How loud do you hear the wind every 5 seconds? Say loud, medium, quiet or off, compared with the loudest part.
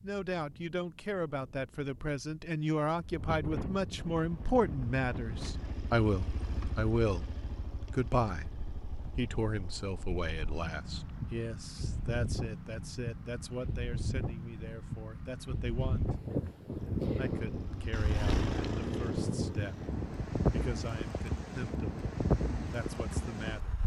medium, quiet, medium, loud, loud.